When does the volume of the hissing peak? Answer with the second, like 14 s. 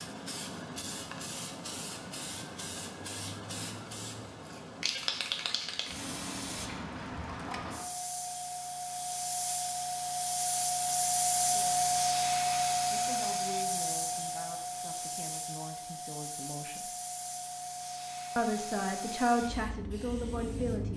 12 s.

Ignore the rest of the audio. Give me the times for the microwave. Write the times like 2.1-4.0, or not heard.
not heard.